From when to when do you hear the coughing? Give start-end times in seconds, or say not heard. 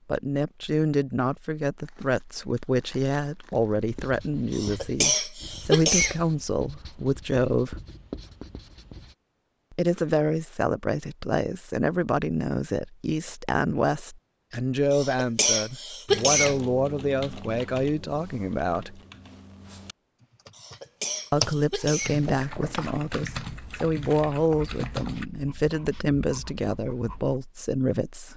4.5-6.2, 14.9-16.6, 20.6-22.2.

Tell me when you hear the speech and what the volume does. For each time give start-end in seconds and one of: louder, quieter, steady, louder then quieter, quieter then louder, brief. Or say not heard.
0.1-7.8 steady
9.7-19.0 steady
21.3-28.3 steady.